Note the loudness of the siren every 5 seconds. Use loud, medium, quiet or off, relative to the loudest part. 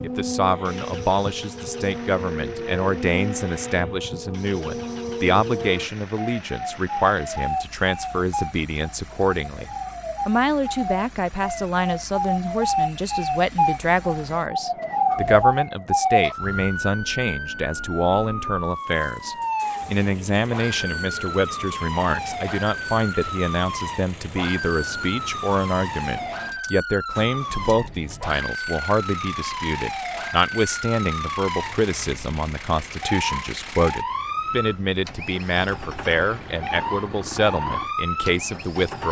medium, medium, loud, loud, medium, medium, medium, medium.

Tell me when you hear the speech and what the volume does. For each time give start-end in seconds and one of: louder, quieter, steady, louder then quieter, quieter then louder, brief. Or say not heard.
0.0-39.0 steady.